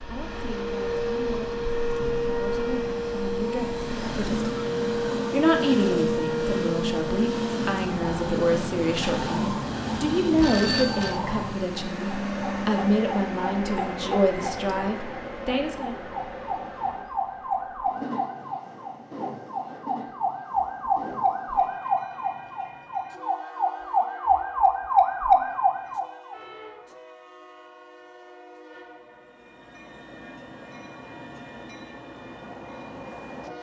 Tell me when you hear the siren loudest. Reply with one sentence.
The loudest moment of the siren is at 25 seconds.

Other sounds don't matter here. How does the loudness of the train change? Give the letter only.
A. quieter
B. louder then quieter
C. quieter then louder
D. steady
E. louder
A.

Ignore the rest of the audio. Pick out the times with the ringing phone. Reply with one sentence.
The ringing phone can be heard from 10.3 to 11.2 s.